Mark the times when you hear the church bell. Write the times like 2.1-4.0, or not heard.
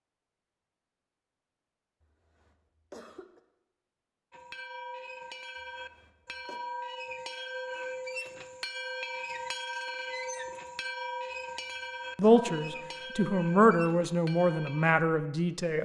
4.3-14.9.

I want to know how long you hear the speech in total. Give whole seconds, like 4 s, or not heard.
4 s.